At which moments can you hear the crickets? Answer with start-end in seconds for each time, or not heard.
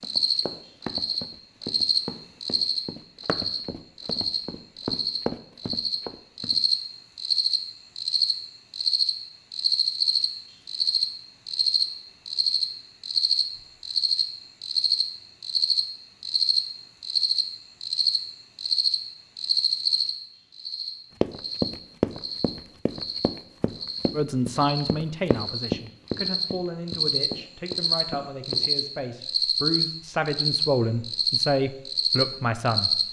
0.0-33.0.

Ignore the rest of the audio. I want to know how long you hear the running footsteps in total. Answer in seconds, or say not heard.
14 s.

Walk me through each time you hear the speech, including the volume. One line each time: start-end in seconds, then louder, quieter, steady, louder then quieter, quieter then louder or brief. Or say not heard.
24.1-33.0 quieter then louder.